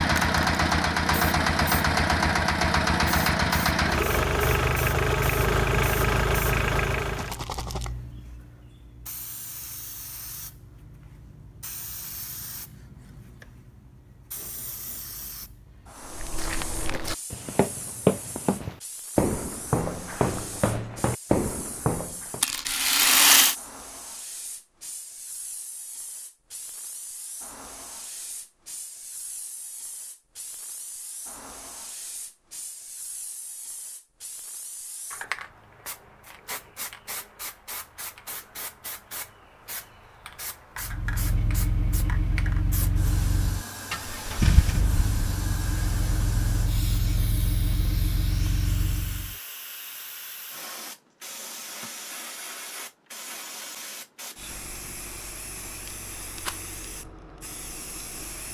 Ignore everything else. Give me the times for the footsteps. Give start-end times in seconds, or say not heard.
16.1-22.4.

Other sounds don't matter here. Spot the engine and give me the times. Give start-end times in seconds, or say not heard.
0.0-7.4, 40.8-49.4.